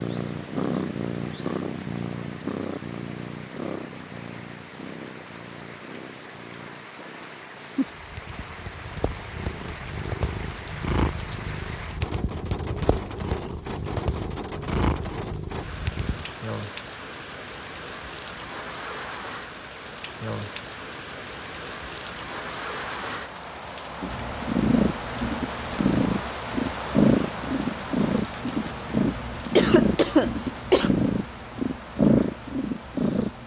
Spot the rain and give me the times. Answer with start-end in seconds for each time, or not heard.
0.0-33.4.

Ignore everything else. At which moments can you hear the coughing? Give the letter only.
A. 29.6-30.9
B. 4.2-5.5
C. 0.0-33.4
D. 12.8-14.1
A.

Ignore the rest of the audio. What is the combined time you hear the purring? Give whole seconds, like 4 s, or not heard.
26 s.